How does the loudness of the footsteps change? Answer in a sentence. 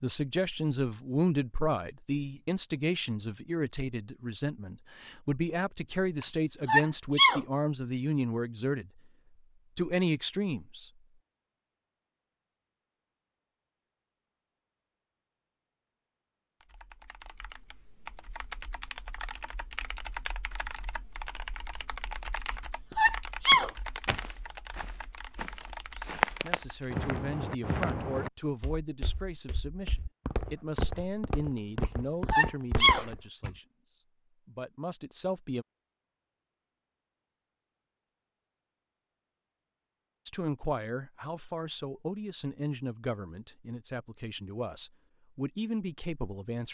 The loudness of the footsteps goes up, then down.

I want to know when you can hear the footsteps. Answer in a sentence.
You can hear the footsteps from 23.4 to 33.2 s.